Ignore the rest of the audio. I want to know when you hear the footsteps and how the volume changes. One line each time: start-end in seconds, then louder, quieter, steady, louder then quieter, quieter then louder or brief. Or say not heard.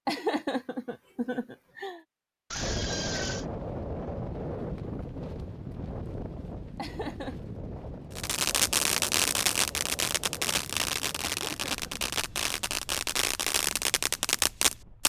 not heard.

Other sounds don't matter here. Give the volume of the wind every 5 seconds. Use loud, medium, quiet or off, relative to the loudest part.
loud, medium, quiet.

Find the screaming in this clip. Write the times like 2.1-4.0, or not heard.
2.5-3.5.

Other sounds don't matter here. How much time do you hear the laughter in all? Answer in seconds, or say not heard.
3 s.